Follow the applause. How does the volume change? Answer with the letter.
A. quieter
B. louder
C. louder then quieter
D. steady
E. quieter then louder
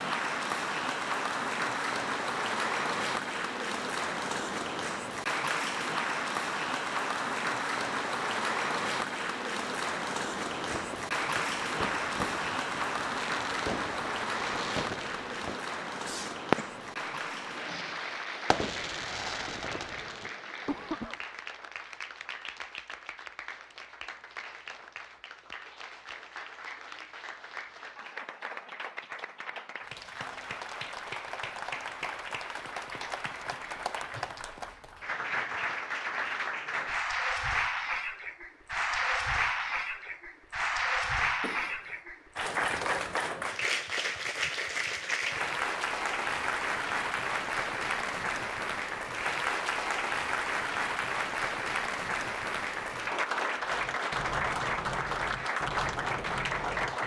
E.